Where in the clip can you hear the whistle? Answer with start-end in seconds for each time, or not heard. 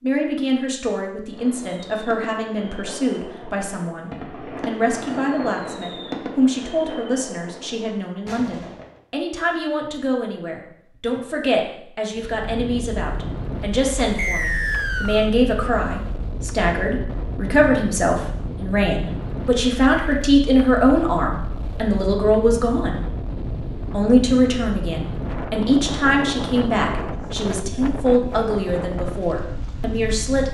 14.2-15.3.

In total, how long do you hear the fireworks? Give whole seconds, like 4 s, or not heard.
8 s.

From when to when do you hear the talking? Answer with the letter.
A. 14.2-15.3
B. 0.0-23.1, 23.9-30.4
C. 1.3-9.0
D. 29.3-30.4
B.